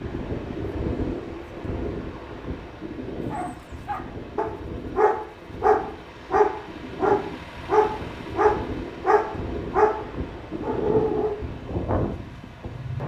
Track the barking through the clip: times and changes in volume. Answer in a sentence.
The barking can be heard from 3.3 to 10.0 s, getting louder; and briefly from 10.6 to 11.3 s.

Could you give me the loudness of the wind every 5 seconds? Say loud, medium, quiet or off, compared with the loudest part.
loud, medium, loud.